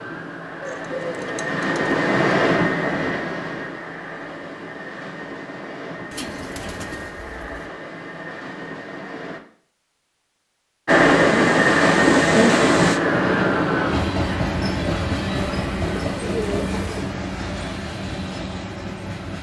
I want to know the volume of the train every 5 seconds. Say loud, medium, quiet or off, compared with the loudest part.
medium, quiet, loud, medium.